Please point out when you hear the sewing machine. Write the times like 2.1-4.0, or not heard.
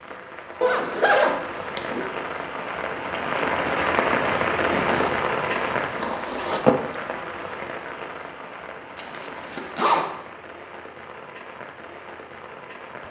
not heard.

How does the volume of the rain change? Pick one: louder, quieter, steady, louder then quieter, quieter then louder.
louder then quieter.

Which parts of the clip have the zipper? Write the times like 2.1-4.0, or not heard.
0.6-2.0, 4.7-6.7, 8.9-10.1.